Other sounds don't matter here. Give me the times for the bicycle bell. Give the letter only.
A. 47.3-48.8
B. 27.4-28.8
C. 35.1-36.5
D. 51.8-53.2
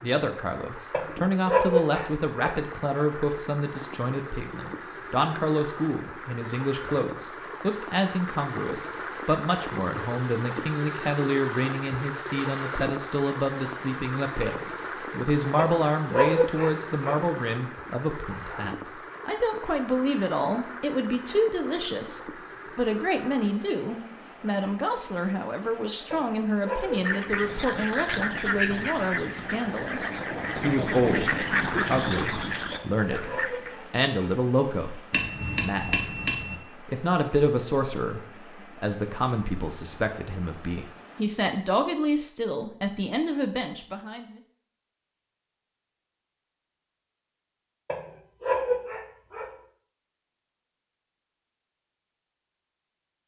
C.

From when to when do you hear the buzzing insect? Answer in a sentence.
The buzzing insect can't be heard in this clip.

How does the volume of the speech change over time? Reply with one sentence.
The volume of the speech stays about the same.